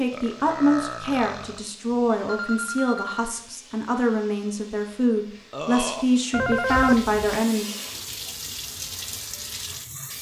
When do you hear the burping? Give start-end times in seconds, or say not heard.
0.1-1.6, 5.5-6.0.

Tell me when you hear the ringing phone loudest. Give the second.
7 s.